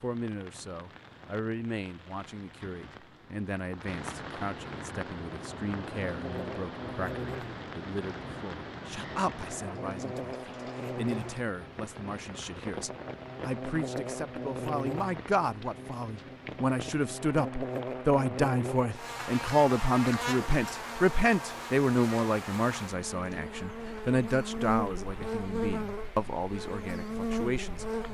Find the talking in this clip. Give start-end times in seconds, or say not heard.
0.0-27.9.